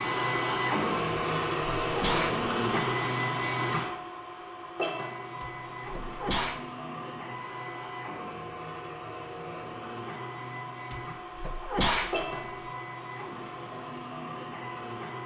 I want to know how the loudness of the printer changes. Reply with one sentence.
The volume of the printer goes down.